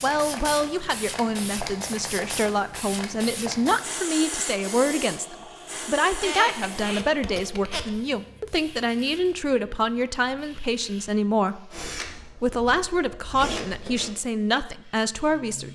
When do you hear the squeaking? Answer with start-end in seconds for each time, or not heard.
6.1-8.0.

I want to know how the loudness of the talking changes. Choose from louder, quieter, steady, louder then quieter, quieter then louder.
steady.